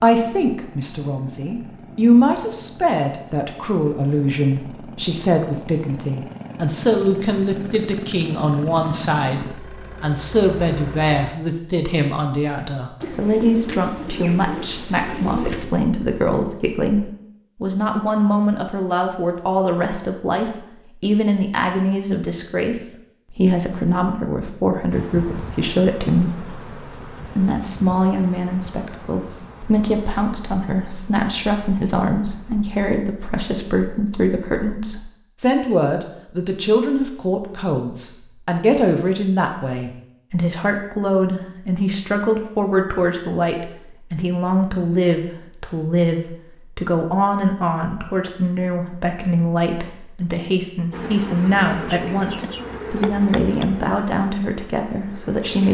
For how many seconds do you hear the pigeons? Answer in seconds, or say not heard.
3 s.